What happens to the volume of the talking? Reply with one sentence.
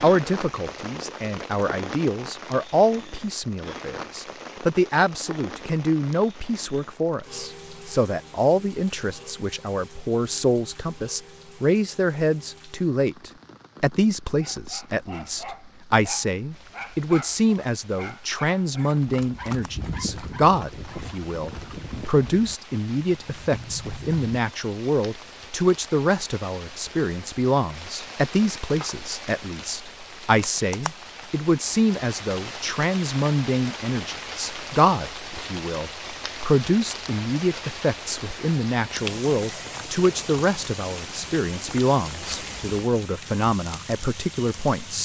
The loudness of the talking stays about the same.